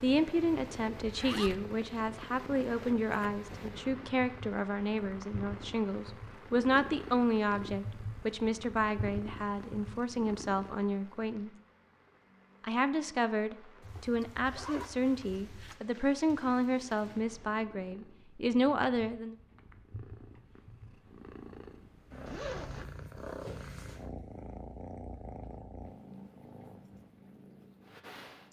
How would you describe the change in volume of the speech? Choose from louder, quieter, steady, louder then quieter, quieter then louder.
steady.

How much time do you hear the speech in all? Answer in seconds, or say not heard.
18 s.